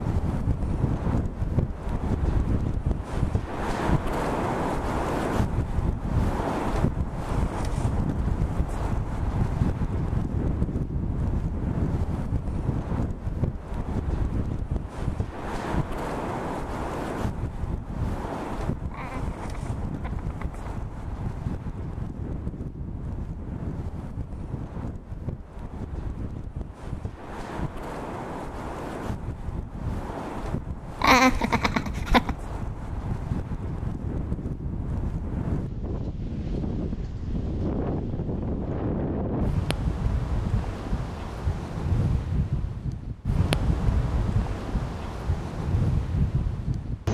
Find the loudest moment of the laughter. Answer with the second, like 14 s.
31 s.